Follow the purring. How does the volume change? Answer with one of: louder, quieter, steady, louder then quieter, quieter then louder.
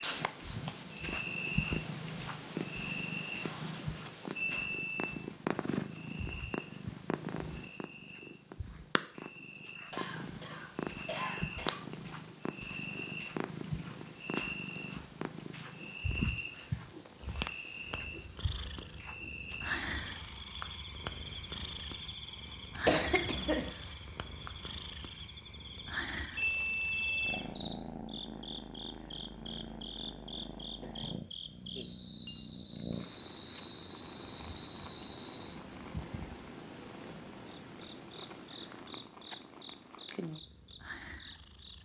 quieter.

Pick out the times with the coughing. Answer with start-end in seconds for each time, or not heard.
9.9-11.8, 22.9-23.8.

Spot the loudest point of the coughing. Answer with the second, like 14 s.
23 s.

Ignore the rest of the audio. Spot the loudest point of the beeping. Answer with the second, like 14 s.
27 s.